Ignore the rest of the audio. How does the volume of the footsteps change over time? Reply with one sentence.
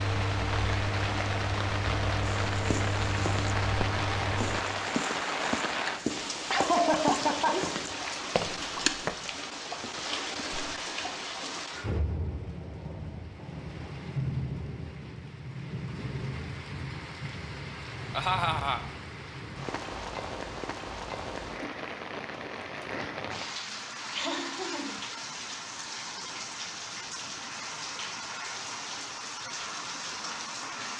The volume of the footsteps stays about the same.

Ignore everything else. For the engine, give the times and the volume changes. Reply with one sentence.
You can hear the engine from 0.0 to 4.7 s, at a steady volume.